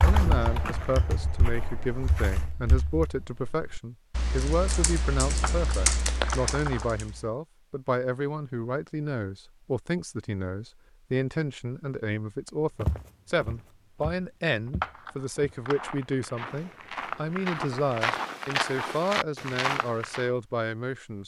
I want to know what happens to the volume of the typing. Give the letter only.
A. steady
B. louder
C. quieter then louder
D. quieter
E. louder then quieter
C.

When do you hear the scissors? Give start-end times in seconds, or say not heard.
5.4-7.0, 14.8-15.9.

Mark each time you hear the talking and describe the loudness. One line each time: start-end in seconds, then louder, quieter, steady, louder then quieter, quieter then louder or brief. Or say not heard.
0.0-21.2 steady.